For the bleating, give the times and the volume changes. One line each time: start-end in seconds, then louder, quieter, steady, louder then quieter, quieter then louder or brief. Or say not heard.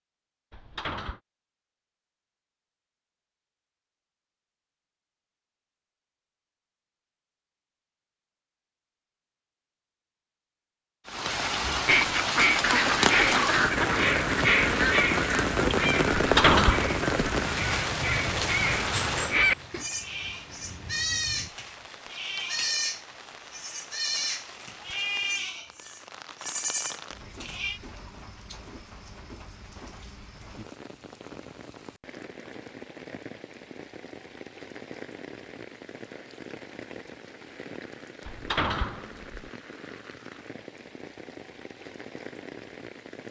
19.8-27.8 steady.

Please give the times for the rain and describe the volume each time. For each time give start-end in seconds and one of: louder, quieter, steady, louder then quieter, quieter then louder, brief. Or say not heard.
11.1-43.2 quieter.